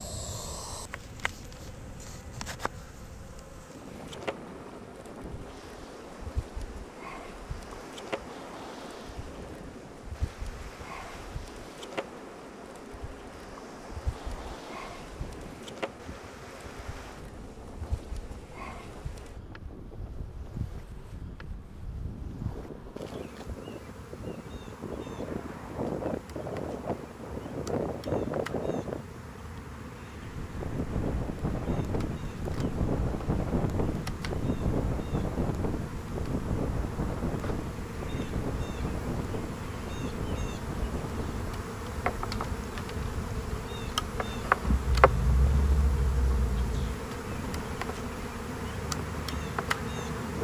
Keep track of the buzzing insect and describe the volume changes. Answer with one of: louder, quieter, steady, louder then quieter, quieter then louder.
louder.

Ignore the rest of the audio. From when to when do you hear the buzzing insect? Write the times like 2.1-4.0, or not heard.
0.0-50.4.